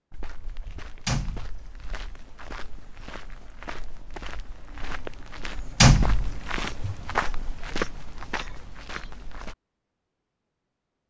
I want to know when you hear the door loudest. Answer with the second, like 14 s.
6 s.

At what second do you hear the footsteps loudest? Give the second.
7 s.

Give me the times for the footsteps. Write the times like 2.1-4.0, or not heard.
0.1-9.6.